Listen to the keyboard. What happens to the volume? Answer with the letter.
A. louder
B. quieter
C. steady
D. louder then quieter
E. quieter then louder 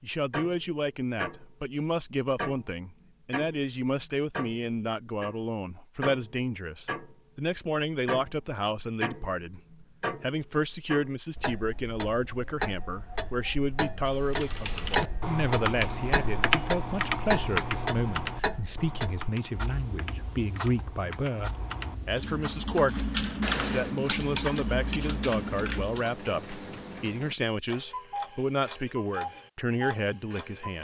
E.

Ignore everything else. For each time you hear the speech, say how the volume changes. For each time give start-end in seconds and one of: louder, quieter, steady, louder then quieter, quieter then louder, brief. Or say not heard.
0.0-30.7 steady.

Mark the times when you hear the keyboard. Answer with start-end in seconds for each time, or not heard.
14.1-26.1.